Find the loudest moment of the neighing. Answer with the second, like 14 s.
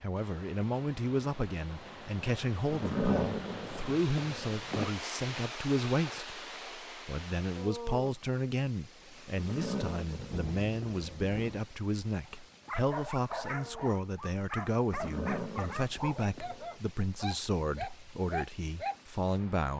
3 s.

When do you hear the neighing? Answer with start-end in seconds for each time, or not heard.
2.7-5.0, 9.3-11.3, 14.9-16.7.